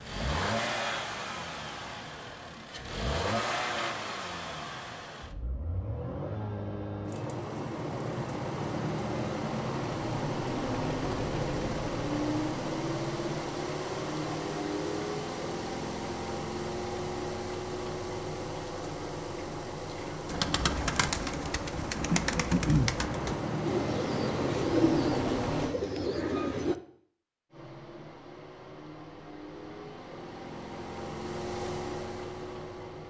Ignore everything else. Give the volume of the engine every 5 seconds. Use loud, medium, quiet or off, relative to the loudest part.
loud, loud, loud, loud, loud, medium, medium.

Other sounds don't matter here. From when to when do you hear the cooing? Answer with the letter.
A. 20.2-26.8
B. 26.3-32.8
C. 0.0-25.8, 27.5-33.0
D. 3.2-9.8
A.